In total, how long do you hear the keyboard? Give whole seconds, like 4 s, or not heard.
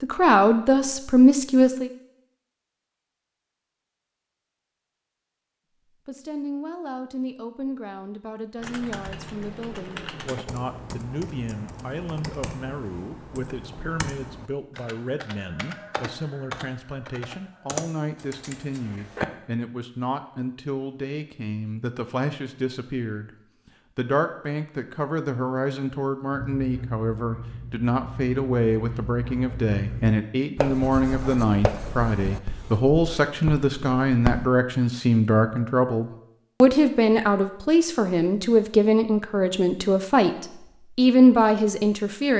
11 s.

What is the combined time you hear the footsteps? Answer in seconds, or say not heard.
not heard.